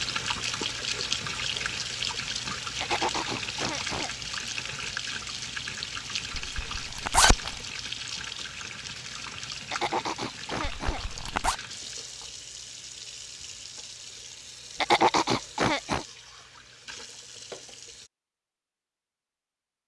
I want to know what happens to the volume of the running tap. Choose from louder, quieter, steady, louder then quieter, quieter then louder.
quieter.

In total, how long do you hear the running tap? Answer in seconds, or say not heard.
18 s.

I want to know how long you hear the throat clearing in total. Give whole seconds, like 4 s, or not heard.
5 s.